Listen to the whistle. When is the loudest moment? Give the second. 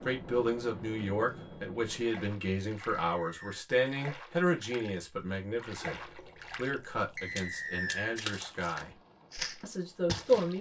8 s.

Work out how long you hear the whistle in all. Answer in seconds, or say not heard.
2 s.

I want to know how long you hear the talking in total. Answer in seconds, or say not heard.
10 s.